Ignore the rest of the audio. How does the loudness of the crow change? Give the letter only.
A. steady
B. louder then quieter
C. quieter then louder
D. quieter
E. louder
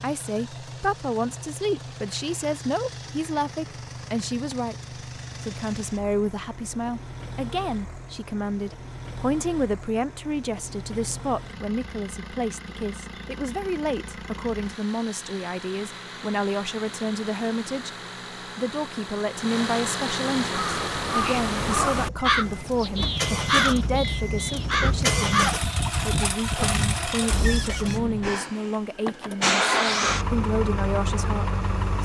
C.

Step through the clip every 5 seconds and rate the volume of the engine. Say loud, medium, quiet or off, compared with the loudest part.
quiet, quiet, quiet, medium, medium, loud, loud.